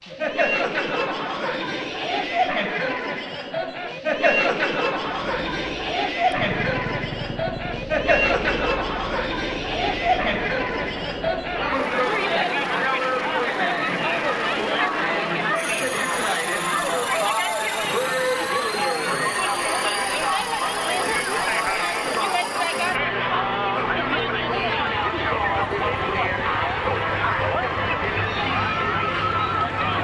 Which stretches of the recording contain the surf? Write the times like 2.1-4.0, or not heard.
not heard.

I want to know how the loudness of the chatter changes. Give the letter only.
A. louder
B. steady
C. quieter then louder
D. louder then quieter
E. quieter
B.